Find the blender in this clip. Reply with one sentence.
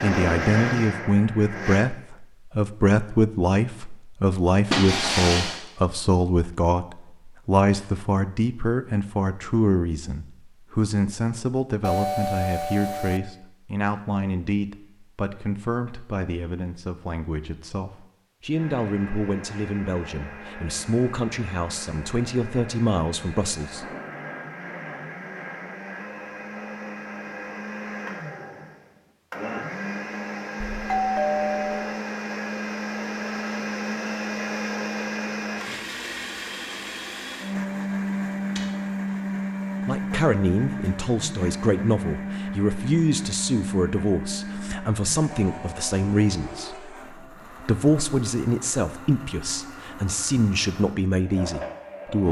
The blender can be heard from 0.0 to 1.9 s and from 18.5 to 52.2 s.